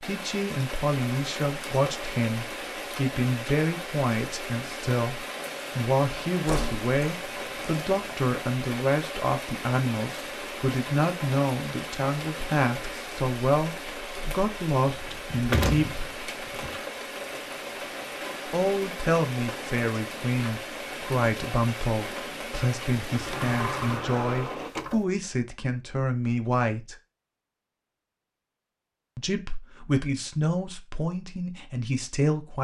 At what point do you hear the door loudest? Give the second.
16 s.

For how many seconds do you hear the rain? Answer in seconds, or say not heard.
25 s.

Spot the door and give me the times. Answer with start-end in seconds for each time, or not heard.
6.5-8.2, 14.8-16.8, 23.1-25.1.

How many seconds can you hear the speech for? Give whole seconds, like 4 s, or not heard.
28 s.